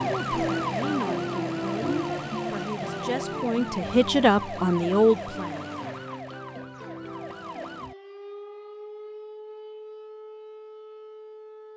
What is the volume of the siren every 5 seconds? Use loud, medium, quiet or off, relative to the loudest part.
loud, medium, quiet.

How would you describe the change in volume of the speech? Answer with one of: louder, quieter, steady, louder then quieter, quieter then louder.
louder.